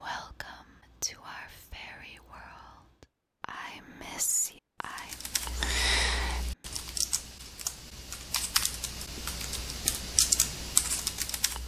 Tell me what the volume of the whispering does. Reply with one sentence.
The loudness of the whispering goes down, then up.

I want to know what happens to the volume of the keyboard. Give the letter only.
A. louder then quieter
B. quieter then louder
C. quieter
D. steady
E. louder
B.